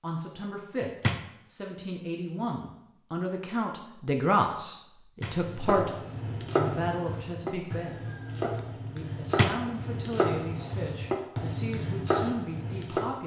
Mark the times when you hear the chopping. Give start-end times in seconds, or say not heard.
5.3-13.2.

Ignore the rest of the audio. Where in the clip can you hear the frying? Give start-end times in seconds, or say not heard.
not heard.